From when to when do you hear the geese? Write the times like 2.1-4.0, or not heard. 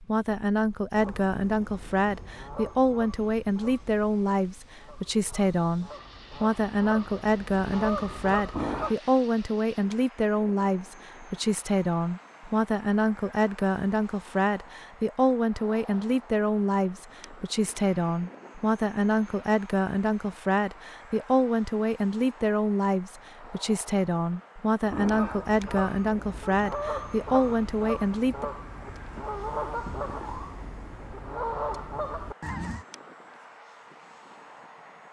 0.9-8.9, 24.8-32.9.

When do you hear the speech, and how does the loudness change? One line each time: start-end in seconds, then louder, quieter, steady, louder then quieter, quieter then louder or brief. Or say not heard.
0.0-28.4 steady.